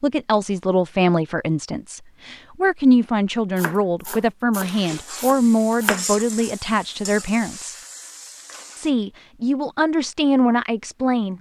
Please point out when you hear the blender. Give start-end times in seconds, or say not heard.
not heard.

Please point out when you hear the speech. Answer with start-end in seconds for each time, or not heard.
0.0-7.8, 8.8-11.3.